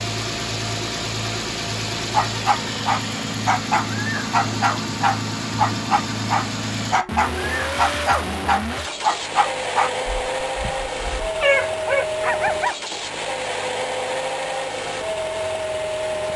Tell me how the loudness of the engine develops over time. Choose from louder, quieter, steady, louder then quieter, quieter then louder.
steady.